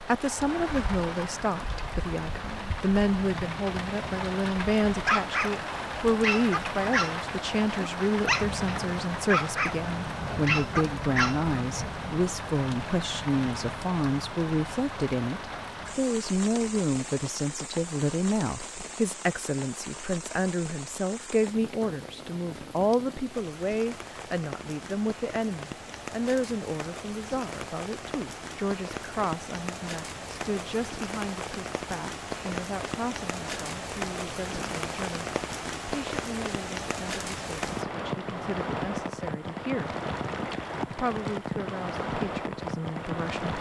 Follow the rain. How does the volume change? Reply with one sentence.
The loudness of the rain goes down, then up.